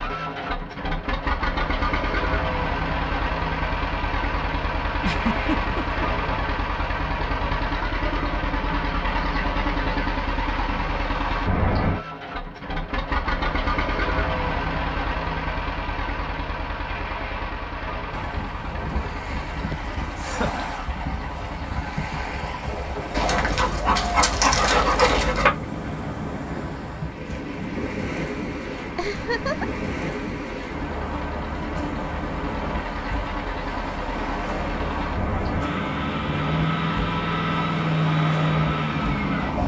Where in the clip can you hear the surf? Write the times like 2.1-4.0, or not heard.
18.1-39.6.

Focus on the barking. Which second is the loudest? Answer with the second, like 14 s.
25 s.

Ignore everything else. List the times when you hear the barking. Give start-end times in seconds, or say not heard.
23.1-25.5.